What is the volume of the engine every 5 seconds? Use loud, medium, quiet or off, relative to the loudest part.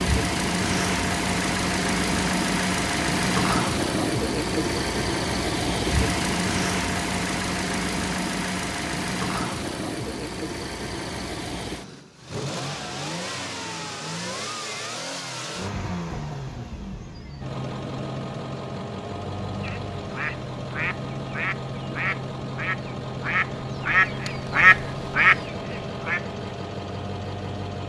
loud, loud, medium, medium, medium, medium.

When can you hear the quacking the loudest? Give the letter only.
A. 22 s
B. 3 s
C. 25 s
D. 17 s
C.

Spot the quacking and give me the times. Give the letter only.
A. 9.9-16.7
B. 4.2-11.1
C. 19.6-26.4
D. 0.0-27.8
C.